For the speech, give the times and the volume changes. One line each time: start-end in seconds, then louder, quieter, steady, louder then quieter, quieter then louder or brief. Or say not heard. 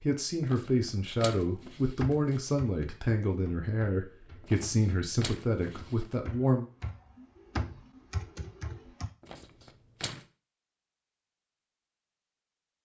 0.0-6.7 steady.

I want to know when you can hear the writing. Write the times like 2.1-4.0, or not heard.
not heard.